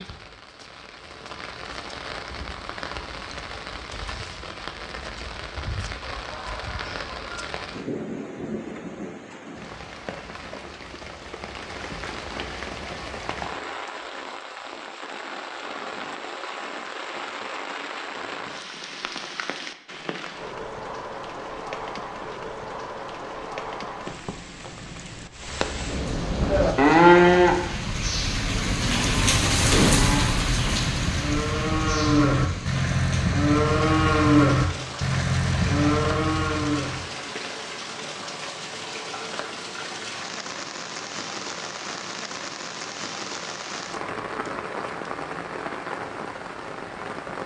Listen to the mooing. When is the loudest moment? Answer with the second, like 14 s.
27 s.